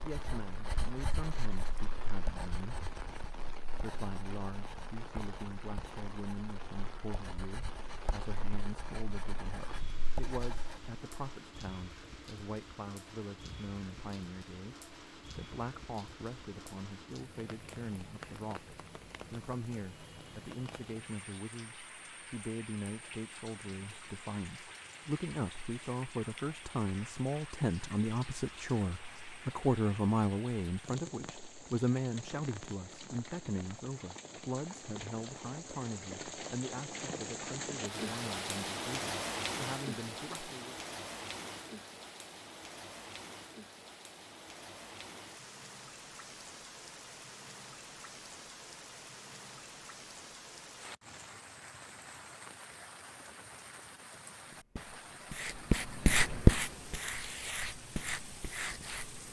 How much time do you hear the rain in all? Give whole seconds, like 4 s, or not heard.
59 s.